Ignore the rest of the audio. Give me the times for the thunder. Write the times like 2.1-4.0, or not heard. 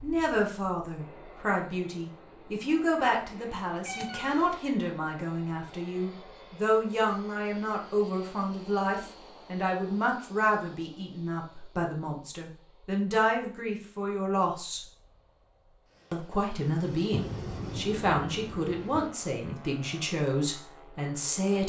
17.1-19.1.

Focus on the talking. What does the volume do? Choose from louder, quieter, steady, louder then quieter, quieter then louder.
steady.